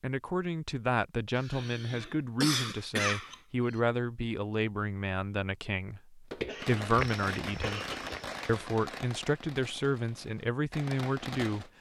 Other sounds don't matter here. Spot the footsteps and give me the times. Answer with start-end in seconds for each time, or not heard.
6.3-8.4.